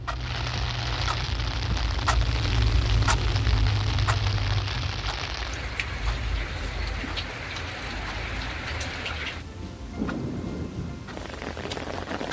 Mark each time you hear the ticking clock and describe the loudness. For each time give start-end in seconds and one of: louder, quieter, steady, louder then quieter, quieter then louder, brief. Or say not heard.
0.0-12.2 quieter.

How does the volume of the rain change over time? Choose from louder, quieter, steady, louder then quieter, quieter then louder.
steady.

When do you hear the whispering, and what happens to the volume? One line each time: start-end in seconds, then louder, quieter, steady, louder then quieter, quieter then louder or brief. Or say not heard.
not heard.